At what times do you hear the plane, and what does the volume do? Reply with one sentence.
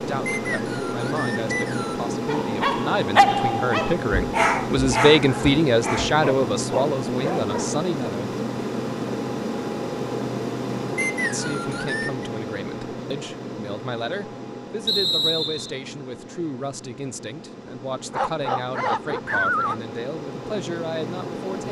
The plane can be heard from 0.0 to 21.6 s, getting quieter.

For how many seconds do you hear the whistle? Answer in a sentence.
The whistle can be heard for 4 seconds in total.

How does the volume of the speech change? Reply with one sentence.
The loudness of the speech goes up, then down.